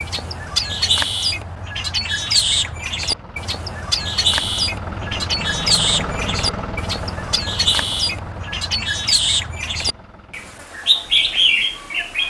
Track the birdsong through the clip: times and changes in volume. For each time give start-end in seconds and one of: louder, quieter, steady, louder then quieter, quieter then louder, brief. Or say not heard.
0.0-12.2 steady.